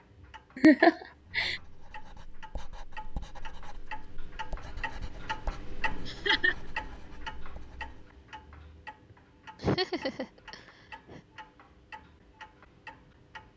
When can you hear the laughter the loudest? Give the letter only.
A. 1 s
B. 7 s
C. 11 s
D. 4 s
A.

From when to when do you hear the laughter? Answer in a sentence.
The laughter can be heard from 0.6 to 1.6 s, from 6.0 to 6.5 s and from 9.6 to 11.2 s.